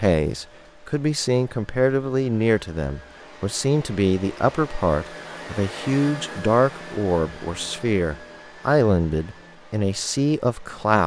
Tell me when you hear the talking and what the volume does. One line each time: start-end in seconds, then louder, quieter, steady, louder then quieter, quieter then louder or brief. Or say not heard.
0.0-11.0 steady.